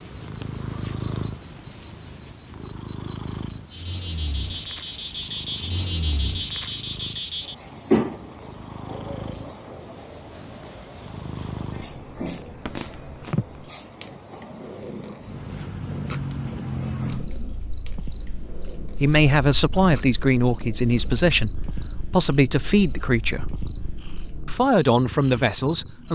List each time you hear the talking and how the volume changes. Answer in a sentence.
The talking can be heard from 19.0 to 23.6 s, at a steady volume; and briefly from 24.4 to 26.0 s.